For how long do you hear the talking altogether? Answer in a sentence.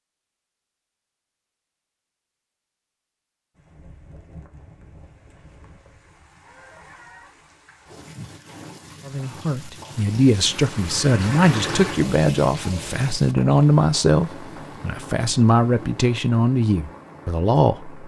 The talking can be heard for 9 seconds in total.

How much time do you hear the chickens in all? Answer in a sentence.
You can hear the chickens for 2 seconds altogether.